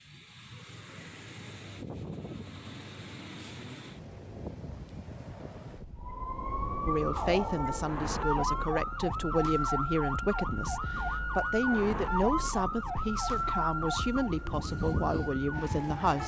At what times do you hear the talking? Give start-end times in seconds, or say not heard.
6.8-16.2.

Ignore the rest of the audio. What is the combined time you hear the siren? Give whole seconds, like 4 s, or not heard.
10 s.